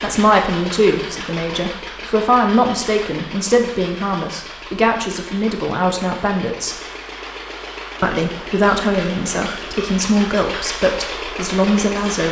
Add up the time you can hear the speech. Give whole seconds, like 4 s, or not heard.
11 s.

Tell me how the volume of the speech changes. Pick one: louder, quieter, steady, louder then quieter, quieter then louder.
steady.